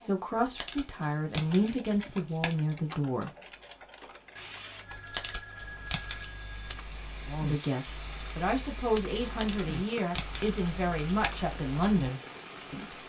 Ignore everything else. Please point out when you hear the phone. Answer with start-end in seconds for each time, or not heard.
4.3-6.9.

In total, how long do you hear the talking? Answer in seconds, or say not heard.
9 s.